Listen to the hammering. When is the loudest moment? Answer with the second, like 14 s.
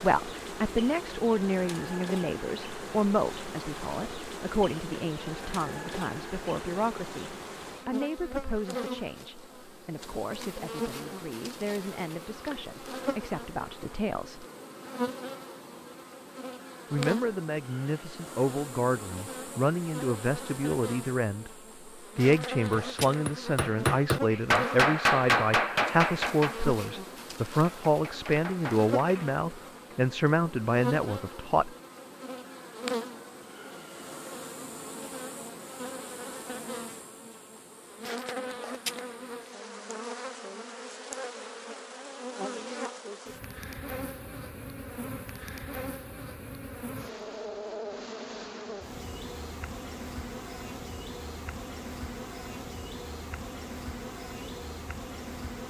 25 s.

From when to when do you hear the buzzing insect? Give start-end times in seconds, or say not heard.
0.0-55.6.